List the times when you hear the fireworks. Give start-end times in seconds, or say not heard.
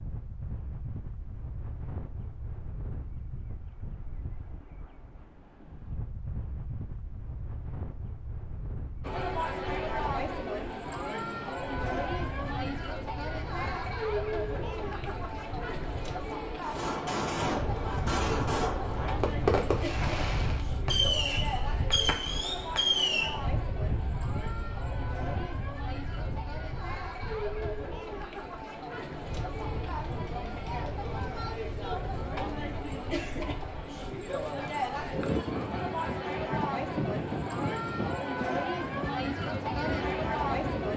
16.6-23.4.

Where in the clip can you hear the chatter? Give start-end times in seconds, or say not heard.
9.0-40.9.